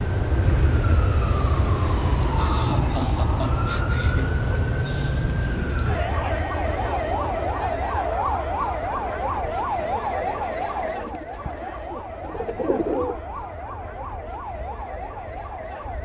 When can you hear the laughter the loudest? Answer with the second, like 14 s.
3 s.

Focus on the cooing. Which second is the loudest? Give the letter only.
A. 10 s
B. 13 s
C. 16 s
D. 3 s
B.